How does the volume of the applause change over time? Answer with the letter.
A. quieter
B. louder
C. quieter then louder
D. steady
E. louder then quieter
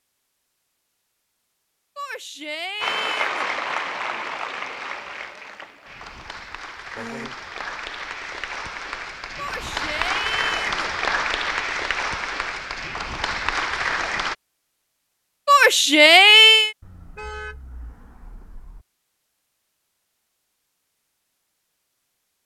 C.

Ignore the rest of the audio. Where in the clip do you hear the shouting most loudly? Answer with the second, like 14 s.
16 s.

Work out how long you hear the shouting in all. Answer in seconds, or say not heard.
4 s.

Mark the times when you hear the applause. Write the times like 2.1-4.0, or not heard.
2.8-14.3.